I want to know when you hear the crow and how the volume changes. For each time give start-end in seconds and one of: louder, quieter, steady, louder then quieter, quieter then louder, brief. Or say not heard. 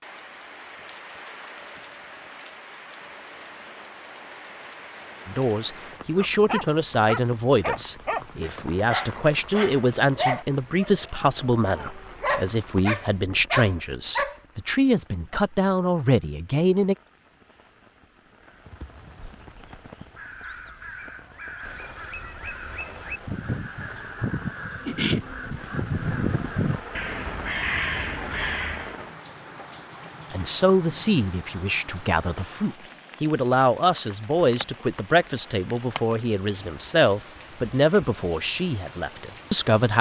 18.4-28.9 louder.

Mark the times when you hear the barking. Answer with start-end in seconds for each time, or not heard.
6.2-14.4.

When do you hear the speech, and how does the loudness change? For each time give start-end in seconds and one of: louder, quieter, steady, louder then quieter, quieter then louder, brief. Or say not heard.
5.2-16.9 steady
30.3-39.9 steady.